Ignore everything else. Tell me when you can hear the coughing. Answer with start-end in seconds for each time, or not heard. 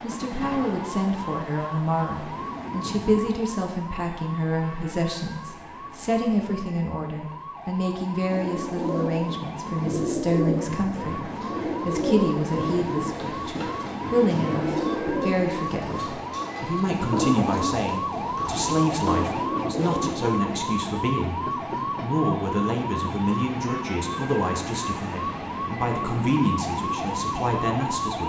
not heard.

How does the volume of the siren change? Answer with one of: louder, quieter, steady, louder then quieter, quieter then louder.
louder.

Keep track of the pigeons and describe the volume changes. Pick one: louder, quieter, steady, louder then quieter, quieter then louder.
steady.